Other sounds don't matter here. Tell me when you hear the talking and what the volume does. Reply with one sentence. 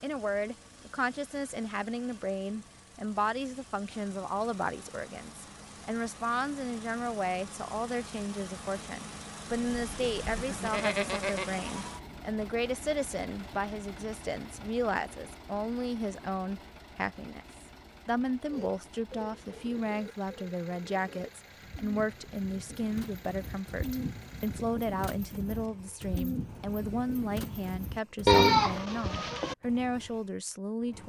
You can hear the talking from 0.0 to 31.0 s, at a steady volume.